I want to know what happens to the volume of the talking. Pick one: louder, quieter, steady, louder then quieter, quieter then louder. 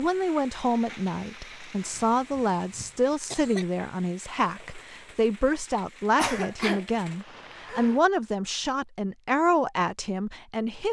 steady.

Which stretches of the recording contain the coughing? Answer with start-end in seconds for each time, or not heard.
1.9-3.6, 6.2-8.0.